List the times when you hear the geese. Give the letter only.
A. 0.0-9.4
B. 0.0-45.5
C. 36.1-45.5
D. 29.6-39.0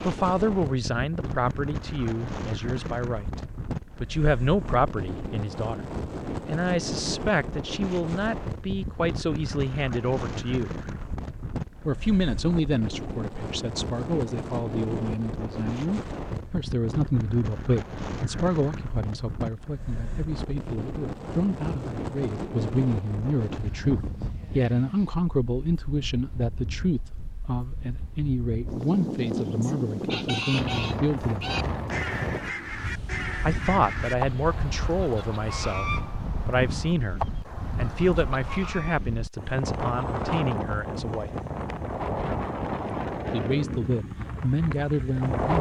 D.